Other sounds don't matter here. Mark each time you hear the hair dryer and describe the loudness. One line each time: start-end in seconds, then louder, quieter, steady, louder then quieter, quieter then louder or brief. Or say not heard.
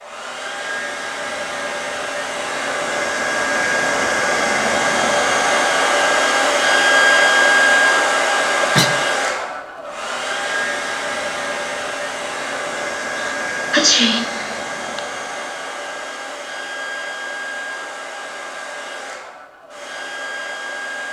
0.0-21.0 louder then quieter.